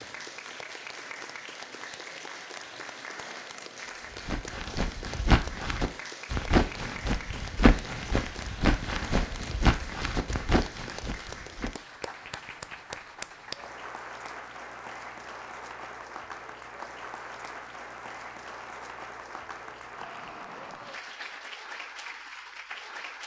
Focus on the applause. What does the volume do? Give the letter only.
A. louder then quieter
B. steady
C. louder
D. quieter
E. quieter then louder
B.